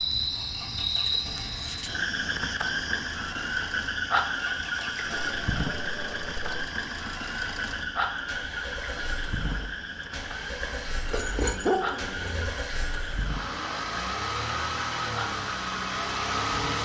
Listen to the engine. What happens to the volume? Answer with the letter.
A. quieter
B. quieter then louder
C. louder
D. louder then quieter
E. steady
C.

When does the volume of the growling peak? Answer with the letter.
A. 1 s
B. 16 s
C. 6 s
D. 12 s
D.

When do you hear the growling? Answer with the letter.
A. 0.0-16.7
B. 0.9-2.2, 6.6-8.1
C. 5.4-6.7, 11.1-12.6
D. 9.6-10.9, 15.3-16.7
C.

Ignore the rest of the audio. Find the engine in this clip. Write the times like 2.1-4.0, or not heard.
0.0-16.7.